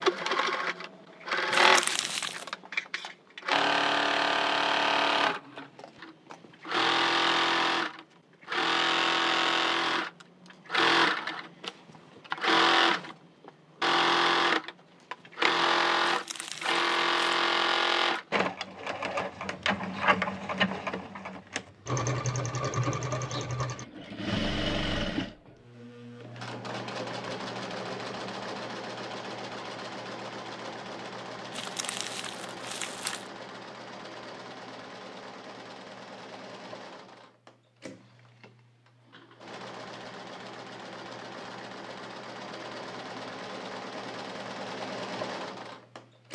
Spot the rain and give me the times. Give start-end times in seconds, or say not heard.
not heard.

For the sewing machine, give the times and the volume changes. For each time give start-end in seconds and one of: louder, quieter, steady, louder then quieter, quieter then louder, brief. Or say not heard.
0.0-46.3 quieter.